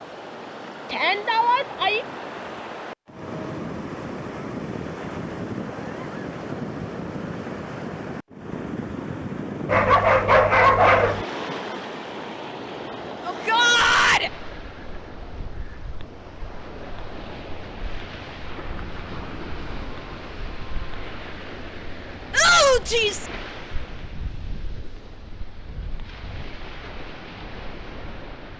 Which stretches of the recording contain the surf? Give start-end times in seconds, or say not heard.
0.0-28.5.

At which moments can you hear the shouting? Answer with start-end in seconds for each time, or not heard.
0.9-2.0, 13.2-14.3, 22.3-23.2.